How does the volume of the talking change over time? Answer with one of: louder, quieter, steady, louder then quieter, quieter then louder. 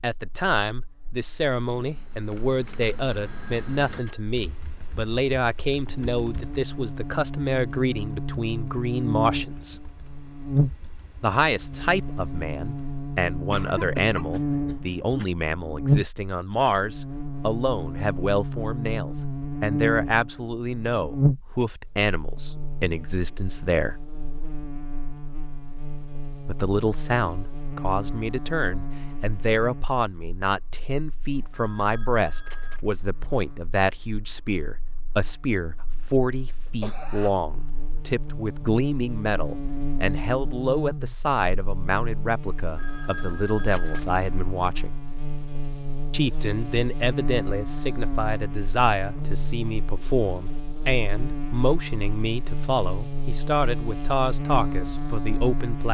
steady.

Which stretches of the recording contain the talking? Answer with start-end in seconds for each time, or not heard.
0.0-9.8, 11.2-23.9, 26.4-45.0, 46.1-55.8.